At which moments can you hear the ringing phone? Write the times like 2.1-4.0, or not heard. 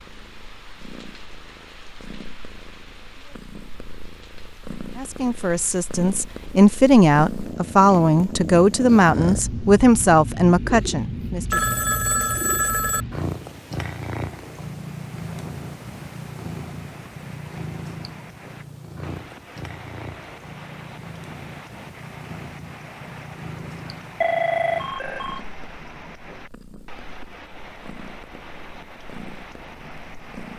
11.5-13.1, 24.2-25.4.